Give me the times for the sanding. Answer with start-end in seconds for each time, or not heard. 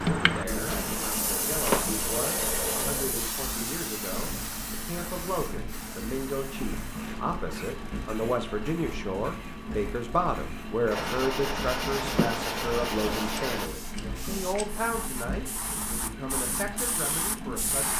0.7-3.0, 10.9-13.7.